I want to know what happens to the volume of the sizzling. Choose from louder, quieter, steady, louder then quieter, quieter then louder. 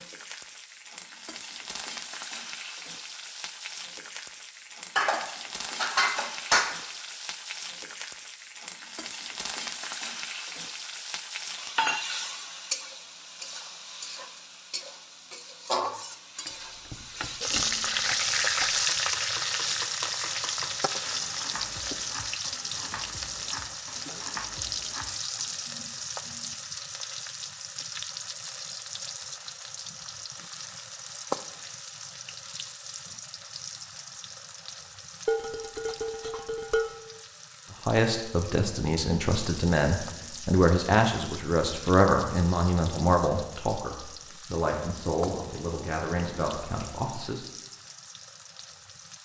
louder then quieter.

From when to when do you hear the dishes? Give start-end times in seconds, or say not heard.
5.0-6.8, 17.6-18.4, 35.2-37.0.